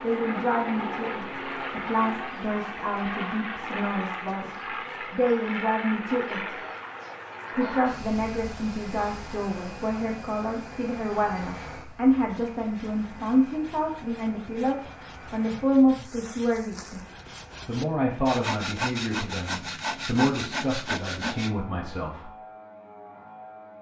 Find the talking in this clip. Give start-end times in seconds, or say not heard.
0.0-6.5, 7.5-17.0, 17.6-22.3.